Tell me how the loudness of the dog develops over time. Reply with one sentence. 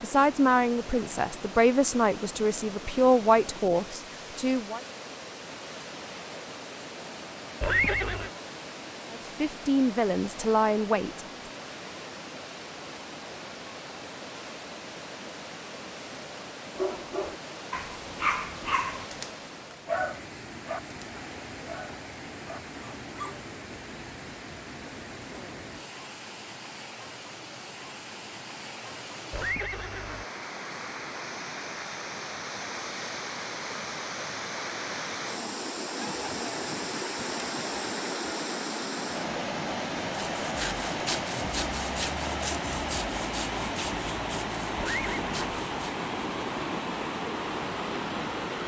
The loudness of the dog goes down.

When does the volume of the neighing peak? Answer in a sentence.
The volume of the neighing peaks at 8 seconds.